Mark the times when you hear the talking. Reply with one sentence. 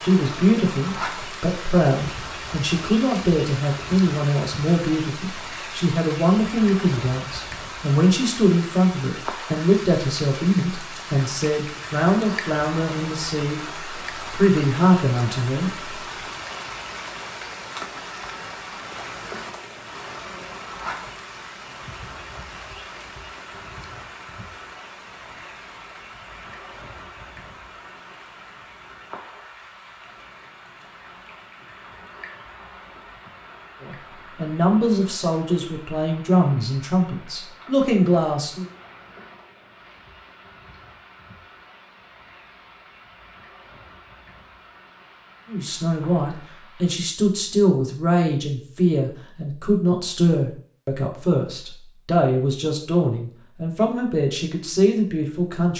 You can hear the talking from 0.0 to 13.6 s, from 14.3 to 15.7 s, from 33.8 to 38.6 s and from 45.5 to 55.7 s.